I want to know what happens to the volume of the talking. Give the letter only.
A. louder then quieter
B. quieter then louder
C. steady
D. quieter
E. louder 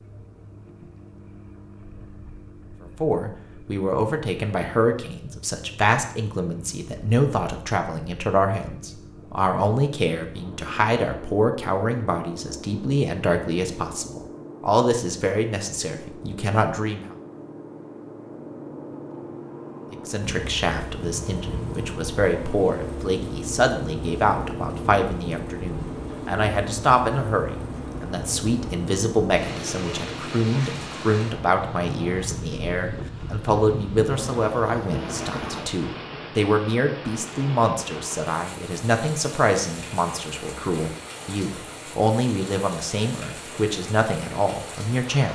C.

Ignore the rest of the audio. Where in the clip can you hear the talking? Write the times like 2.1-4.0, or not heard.
3.0-17.1, 19.9-45.3.